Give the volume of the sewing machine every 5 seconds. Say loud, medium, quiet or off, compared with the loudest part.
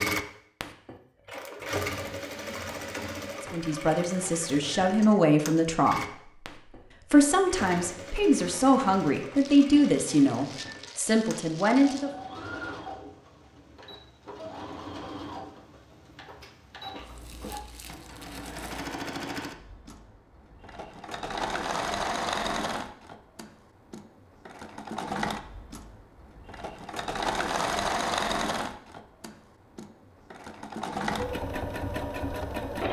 loud, medium, medium, medium, loud, loud, loud.